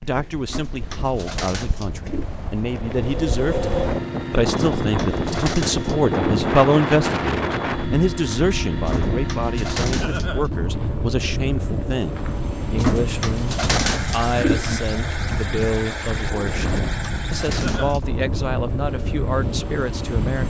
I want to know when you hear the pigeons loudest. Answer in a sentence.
The loudest moment of the pigeons is at 14 seconds.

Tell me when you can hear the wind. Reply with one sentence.
You can hear the wind from 0.0 to 20.4 s.